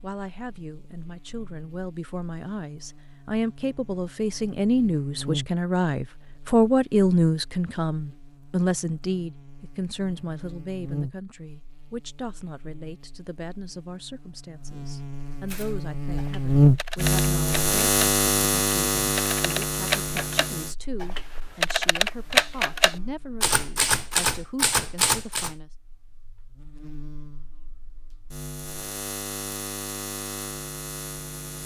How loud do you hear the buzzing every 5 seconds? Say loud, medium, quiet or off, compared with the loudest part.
quiet, quiet, quiet, loud, quiet, quiet, quiet.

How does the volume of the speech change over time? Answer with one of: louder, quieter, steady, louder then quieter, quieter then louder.
louder then quieter.